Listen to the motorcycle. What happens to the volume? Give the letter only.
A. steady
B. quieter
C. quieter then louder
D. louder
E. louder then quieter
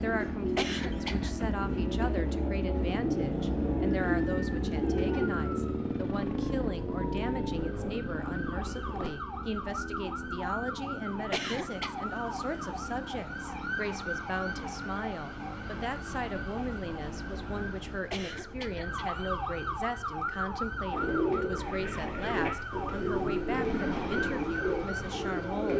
B.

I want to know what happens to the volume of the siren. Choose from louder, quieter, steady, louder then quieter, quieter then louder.
louder.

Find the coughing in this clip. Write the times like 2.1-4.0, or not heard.
0.6-1.3, 11.3-12.0, 18.1-19.2.